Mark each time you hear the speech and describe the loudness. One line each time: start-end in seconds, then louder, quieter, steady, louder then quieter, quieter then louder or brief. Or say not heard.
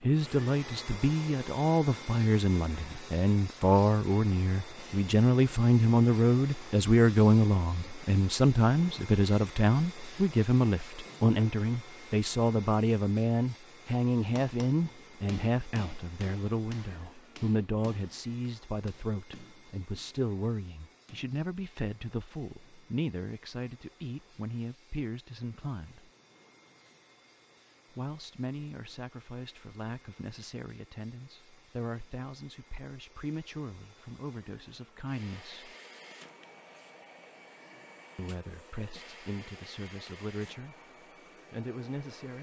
0.0-26.1 quieter
27.9-35.8 steady
38.1-40.8 brief
41.5-42.3 brief.